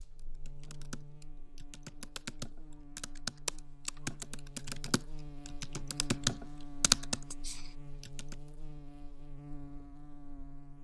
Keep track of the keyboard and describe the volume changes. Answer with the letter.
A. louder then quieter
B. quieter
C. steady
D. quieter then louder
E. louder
E.